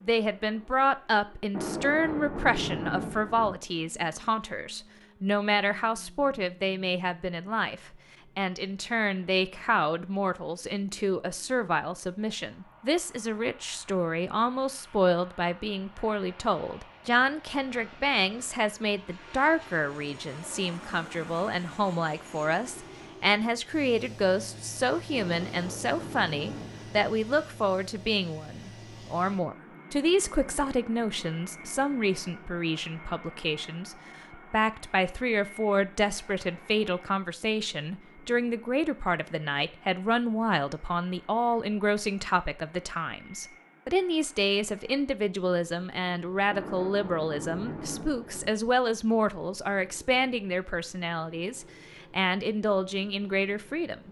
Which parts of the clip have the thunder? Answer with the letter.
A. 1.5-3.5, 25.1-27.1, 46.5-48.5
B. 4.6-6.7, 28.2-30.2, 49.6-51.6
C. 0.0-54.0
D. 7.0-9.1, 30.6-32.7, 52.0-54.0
A.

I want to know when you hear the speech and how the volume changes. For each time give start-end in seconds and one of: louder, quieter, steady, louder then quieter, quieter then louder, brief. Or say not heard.
0.0-54.0 steady.